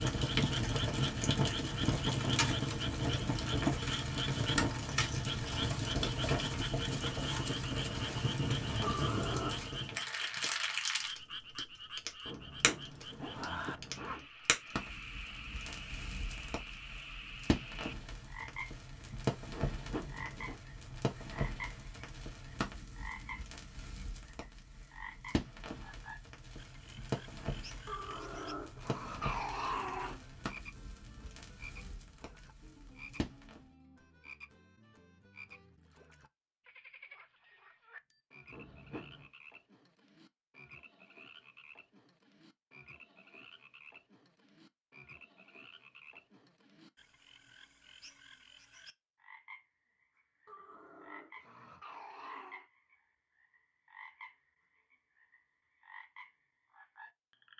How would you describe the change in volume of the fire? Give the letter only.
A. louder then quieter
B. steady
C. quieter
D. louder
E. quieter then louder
C.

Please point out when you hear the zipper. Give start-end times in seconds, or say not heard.
12.2-14.2, 19.5-20.6, 38.5-39.3.